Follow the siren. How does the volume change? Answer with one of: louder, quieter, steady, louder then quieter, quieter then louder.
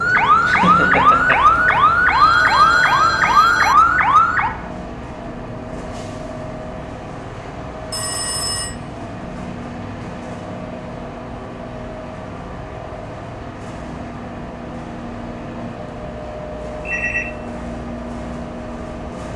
steady.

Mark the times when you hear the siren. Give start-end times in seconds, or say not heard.
0.0-4.5.